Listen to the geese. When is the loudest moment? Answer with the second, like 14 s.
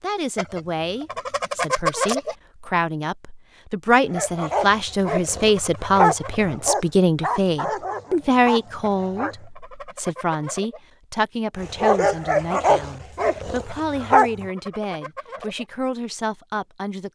2 s.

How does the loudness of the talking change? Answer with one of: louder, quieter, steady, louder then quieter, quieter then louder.
louder then quieter.